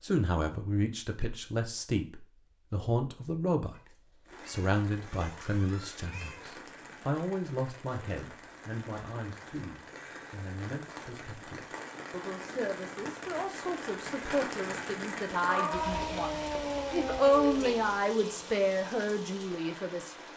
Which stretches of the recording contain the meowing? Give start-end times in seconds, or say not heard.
3.7-6.5, 15.4-17.8.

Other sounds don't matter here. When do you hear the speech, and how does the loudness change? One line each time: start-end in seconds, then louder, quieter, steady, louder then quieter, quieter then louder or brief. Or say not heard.
0.0-20.1 quieter then louder.